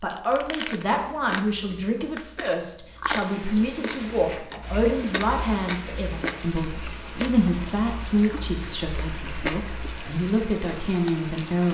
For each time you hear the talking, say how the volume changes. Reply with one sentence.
The talking can be heard from 0.0 to 11.6 s, at a steady volume.